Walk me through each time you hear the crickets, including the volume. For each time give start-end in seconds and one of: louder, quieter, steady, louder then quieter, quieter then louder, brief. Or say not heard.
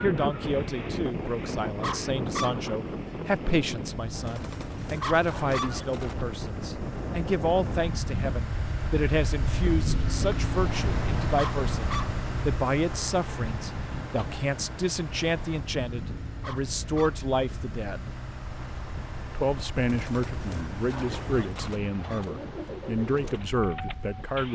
not heard.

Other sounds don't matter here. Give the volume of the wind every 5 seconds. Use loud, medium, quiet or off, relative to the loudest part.
loud, loud, loud, medium, medium.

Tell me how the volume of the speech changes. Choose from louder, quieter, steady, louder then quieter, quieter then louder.
steady.